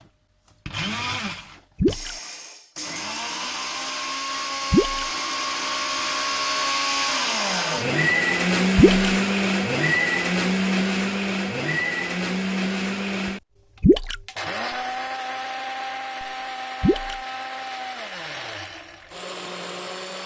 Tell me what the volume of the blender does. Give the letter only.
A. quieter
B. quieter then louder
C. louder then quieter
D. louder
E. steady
C.